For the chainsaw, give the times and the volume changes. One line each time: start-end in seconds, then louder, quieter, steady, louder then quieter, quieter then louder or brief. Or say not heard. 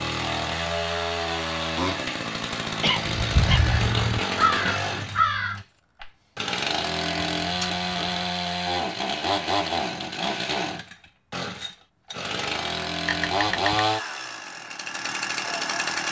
0.0-16.0 steady.